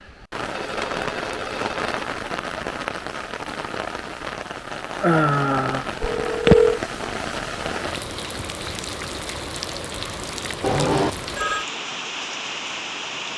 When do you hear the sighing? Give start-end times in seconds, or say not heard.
5.0-5.8.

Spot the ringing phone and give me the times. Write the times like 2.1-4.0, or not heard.
0.5-2.1, 6.0-6.8, 10.6-11.7.